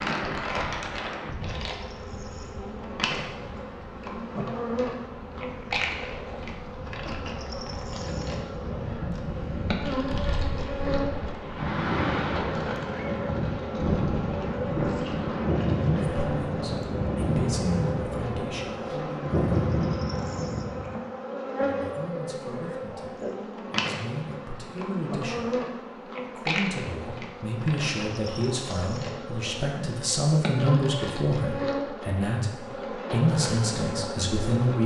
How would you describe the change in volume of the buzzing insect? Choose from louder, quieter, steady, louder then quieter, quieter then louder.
steady.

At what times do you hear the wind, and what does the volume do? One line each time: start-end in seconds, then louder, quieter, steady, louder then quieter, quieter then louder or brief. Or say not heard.
0.0-20.9 louder.